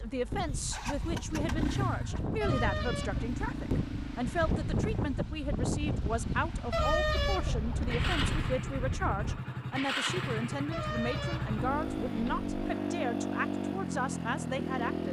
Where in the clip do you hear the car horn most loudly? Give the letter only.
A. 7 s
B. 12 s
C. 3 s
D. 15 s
A.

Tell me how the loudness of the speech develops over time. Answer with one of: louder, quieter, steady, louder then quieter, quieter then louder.
steady.